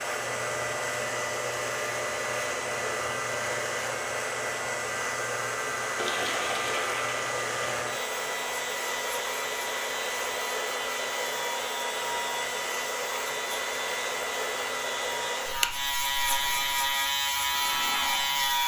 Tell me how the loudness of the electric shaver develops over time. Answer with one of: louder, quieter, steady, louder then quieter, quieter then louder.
louder.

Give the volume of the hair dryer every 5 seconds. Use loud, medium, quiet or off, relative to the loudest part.
loud, loud, loud, medium.